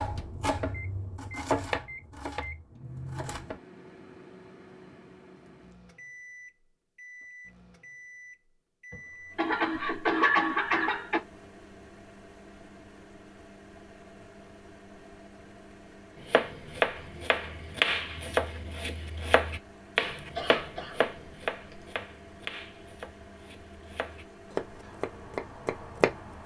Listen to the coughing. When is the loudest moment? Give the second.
10 s.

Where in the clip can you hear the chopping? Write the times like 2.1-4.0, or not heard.
0.0-3.6, 16.2-26.4.